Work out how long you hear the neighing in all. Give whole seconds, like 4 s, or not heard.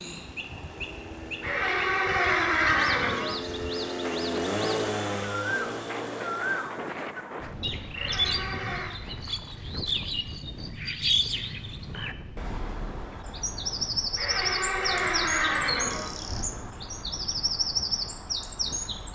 5 s.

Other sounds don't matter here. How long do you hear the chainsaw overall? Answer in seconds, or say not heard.
7 s.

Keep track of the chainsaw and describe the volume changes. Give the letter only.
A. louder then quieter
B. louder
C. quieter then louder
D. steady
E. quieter
A.